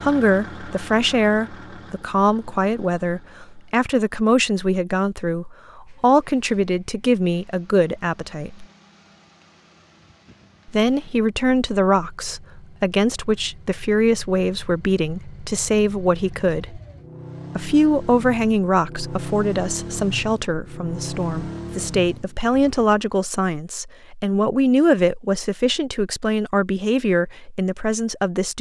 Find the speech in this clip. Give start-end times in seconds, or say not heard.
0.0-8.7, 10.7-16.8, 17.6-28.5.